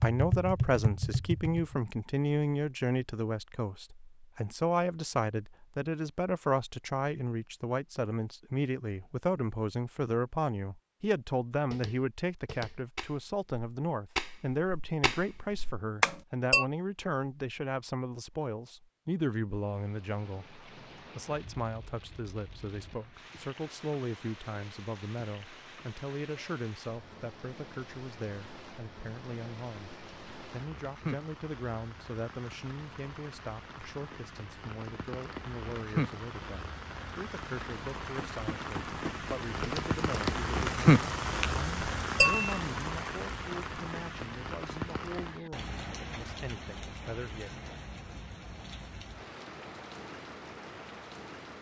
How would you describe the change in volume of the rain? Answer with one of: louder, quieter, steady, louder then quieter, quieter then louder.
louder then quieter.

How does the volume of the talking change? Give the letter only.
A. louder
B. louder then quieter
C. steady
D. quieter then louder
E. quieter
E.